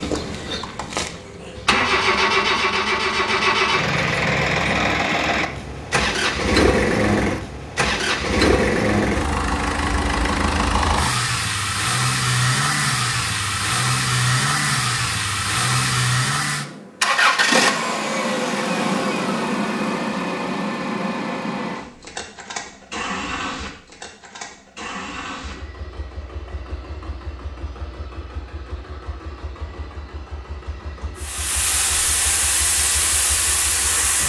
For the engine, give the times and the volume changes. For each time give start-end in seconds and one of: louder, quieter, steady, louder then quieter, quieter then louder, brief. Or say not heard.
0.0-34.2 quieter.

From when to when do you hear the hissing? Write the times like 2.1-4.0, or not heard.
31.1-34.2.